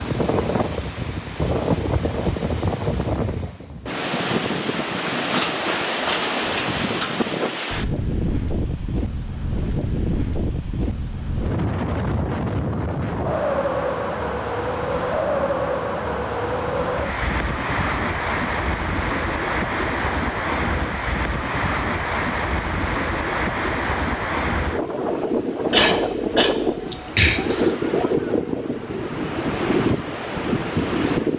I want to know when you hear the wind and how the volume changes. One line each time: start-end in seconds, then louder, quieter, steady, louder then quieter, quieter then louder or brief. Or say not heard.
0.0-31.3 steady.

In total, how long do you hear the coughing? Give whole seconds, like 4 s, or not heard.
2 s.